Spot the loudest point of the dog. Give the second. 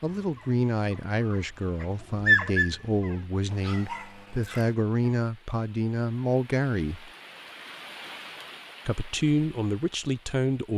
2 s.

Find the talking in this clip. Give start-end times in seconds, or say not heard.
0.0-7.1, 8.8-10.7.